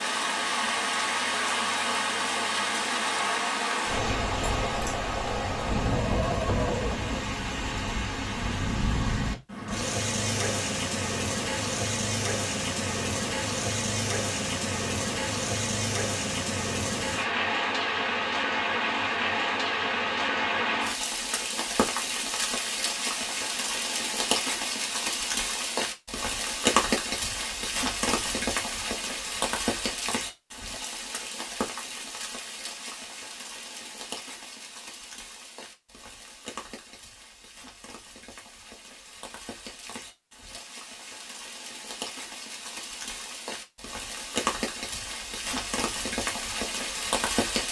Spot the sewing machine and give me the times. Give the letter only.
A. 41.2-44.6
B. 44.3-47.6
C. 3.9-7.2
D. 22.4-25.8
C.